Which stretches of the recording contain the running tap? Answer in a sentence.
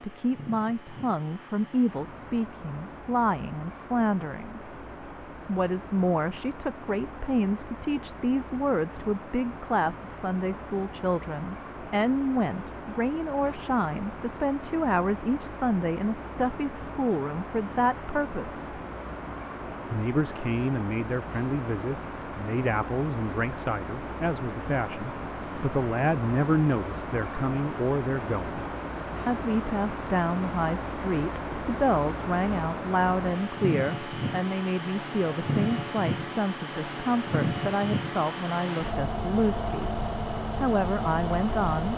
The running tap can't be heard in this clip.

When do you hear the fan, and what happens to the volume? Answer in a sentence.
The fan can be heard from 0.0 to 41.9 s, getting louder.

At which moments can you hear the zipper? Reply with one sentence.
The zipper can't be heard in this clip.